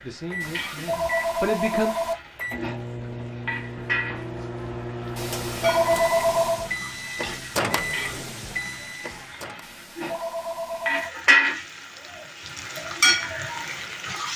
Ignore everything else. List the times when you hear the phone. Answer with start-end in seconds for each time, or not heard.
0.4-2.1, 5.2-6.7, 9.6-11.1.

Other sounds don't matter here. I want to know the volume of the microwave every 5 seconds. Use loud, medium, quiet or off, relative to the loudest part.
loud, loud, off.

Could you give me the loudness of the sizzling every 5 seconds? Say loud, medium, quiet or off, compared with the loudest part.
medium, quiet, loud.